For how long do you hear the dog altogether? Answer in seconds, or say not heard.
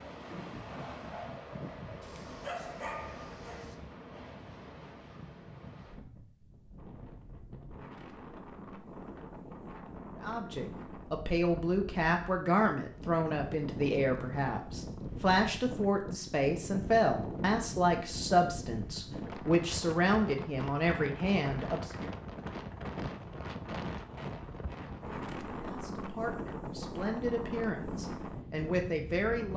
2 s.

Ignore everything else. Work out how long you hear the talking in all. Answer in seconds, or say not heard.
16 s.